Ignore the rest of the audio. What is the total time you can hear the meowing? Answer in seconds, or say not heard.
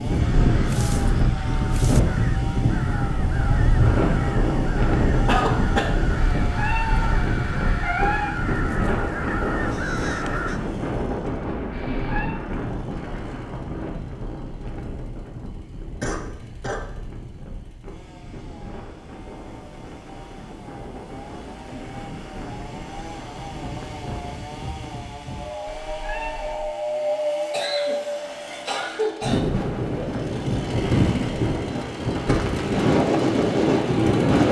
4 s.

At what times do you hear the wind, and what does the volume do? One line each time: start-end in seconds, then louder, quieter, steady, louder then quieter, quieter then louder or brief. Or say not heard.
0.0-34.4 quieter then louder.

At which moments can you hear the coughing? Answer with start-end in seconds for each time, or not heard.
5.2-6.0, 16.0-16.9, 27.5-29.4.